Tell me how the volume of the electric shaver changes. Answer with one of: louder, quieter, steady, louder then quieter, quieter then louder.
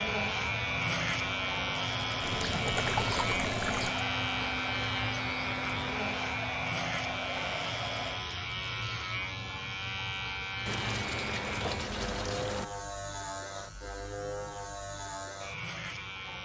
quieter.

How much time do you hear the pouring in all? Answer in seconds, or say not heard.
4 s.